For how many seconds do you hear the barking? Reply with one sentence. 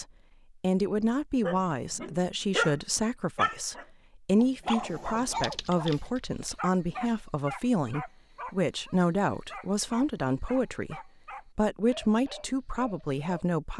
The barking can be heard for 12 seconds in total.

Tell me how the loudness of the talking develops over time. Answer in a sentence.
The volume of the talking stays about the same.